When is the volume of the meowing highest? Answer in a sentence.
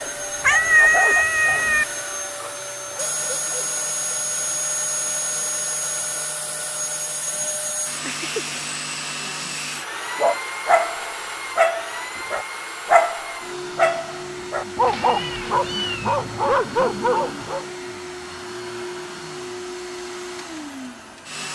The loudest moment of the meowing is at 1 second.